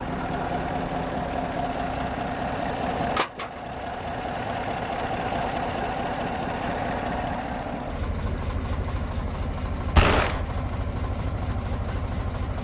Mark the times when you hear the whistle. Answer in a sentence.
You can't hear the whistle here.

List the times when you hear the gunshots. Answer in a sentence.
The gunshots can be heard from 9.9 to 10.4 s.